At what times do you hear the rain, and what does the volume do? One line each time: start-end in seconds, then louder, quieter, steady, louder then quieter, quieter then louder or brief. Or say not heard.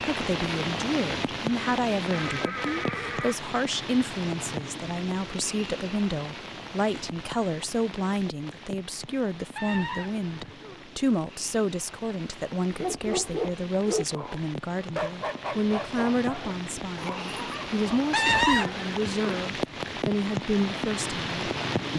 0.0-21.9 quieter then louder.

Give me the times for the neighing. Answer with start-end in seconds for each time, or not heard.
2.1-3.4, 9.6-10.8, 18.1-19.4.